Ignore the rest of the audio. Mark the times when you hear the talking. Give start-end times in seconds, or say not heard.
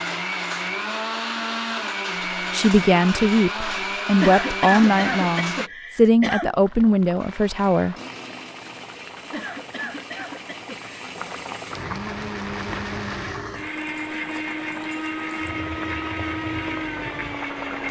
2.5-8.0.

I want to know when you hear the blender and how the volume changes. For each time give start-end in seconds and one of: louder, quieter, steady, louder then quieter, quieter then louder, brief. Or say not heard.
0.0-5.7 steady
7.2-17.8 louder.